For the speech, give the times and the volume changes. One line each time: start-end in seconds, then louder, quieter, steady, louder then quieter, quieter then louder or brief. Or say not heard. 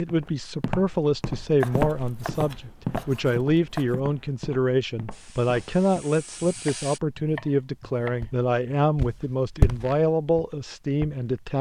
0.0-11.5 steady.